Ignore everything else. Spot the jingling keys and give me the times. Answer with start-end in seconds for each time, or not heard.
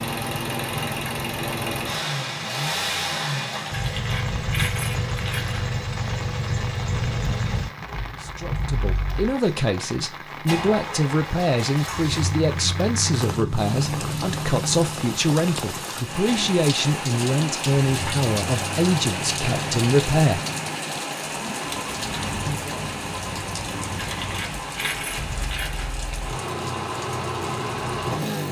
3.7-5.6, 23.9-25.9.